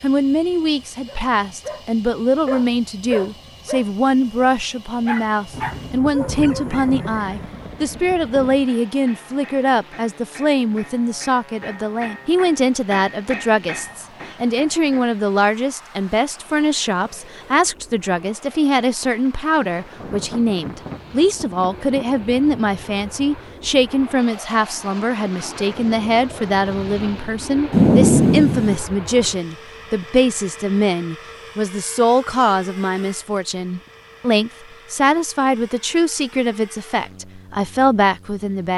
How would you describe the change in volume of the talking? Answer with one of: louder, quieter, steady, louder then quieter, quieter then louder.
steady.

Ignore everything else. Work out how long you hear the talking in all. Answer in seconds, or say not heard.
39 s.